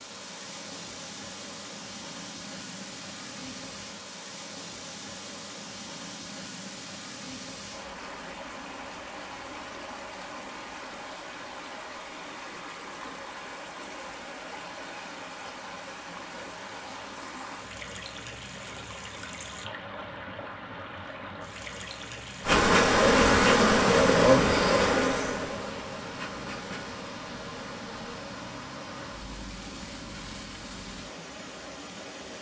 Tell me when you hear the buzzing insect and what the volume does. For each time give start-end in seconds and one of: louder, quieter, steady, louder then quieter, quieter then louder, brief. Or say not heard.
22.4-28.2 quieter.